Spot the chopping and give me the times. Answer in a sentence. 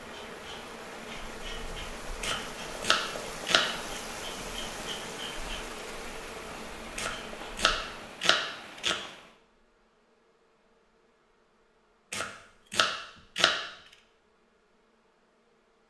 The chopping can be heard from 2.2 to 3.7 s, from 7.0 to 9.0 s and from 12.1 to 13.7 s.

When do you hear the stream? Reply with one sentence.
You can hear the stream from 0.0 to 9.4 s.